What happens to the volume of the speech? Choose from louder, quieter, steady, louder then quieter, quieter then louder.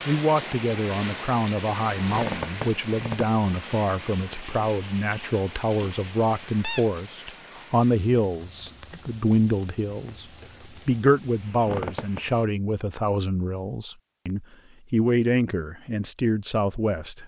steady.